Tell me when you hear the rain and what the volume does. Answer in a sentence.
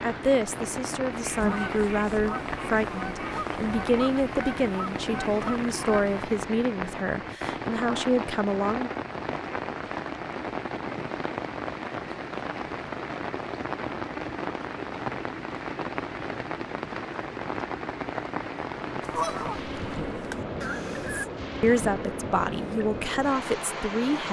You can hear the rain from 0.0 to 24.2 s, at a steady volume.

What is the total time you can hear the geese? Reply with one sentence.
You can hear the geese for 7 seconds altogether.